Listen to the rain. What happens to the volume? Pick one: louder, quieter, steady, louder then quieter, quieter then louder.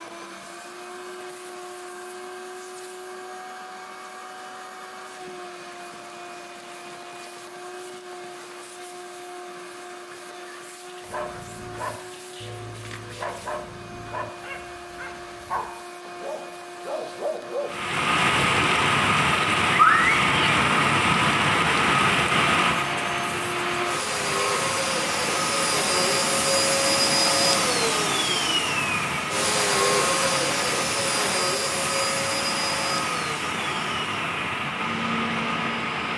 quieter.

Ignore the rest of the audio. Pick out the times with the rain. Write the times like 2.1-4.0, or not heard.
17.6-36.1.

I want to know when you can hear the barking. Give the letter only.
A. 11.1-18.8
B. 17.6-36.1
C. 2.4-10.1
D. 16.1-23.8
A.